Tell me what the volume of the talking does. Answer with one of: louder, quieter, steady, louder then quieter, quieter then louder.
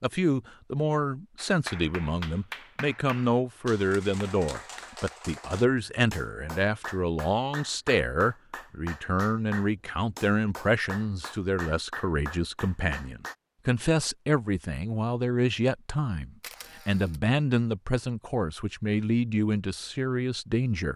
steady.